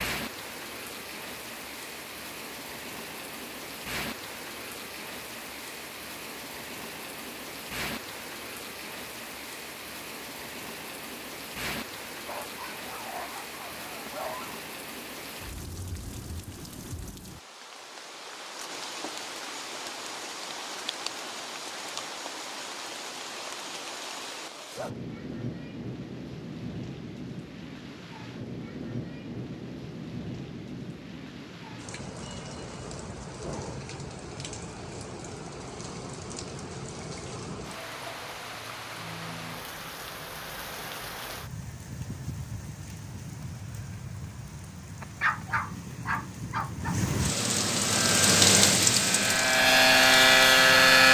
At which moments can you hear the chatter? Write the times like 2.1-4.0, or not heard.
not heard.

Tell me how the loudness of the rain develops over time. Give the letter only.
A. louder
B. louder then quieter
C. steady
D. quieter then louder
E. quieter
A.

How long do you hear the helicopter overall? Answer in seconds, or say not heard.
3 s.